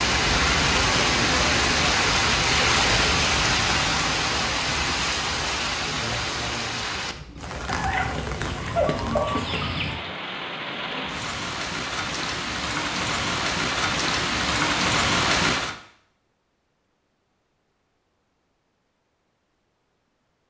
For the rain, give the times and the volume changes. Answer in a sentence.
The rain can be heard from 0.0 to 15.8 s, getting quieter then louder.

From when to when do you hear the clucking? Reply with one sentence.
You can hear the clucking from 7.7 to 10.0 s.